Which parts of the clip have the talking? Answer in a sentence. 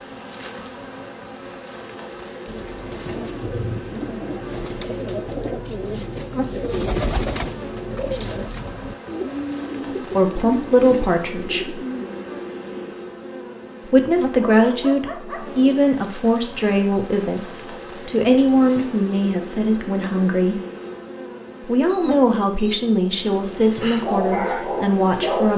The talking can be heard from 10.1 to 11.8 s, from 13.9 to 20.6 s and from 21.6 to 25.5 s.